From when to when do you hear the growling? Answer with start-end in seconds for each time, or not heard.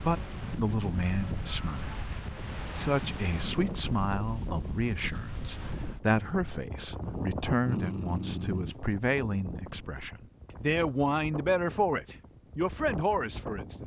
7.0-8.8.